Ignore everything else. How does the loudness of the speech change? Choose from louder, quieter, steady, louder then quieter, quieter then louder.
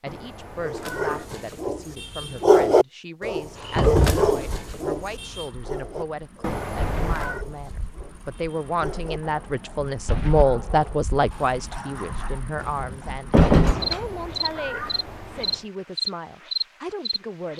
louder then quieter.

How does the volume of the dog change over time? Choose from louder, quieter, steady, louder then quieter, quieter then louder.
quieter.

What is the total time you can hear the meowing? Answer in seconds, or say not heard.
4 s.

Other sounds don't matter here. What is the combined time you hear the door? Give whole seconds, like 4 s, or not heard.
2 s.